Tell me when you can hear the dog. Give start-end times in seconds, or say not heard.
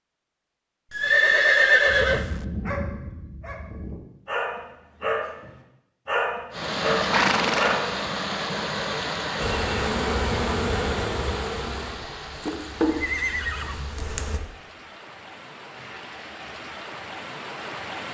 1.9-7.9.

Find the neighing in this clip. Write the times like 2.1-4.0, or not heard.
0.9-2.5, 7.0-7.8, 12.3-13.9.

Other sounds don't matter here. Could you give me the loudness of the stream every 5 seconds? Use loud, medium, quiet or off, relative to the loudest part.
off, loud, medium, medium.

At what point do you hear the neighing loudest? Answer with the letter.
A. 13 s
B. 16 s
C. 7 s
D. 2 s
D.